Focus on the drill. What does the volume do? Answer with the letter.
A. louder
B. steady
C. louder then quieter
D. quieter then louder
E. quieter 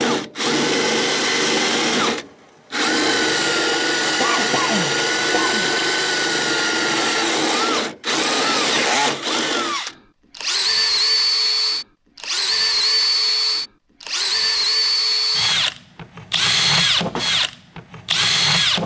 B.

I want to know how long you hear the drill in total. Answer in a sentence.
You can hear the drill for 19 seconds altogether.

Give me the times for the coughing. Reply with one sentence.
The coughing can be heard from 4.2 to 5.7 s.